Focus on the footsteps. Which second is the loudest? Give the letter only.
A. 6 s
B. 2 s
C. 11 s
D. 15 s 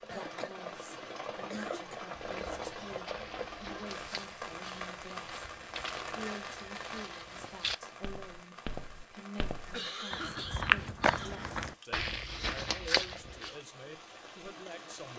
C.